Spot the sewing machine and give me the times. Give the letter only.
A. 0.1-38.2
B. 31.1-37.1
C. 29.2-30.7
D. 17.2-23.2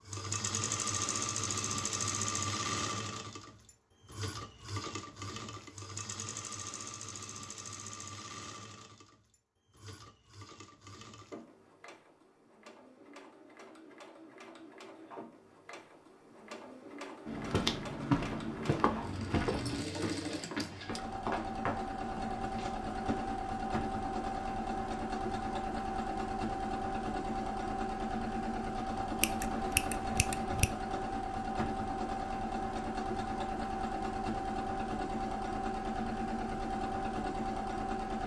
A.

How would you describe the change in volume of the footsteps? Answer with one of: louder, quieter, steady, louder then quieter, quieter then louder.
quieter.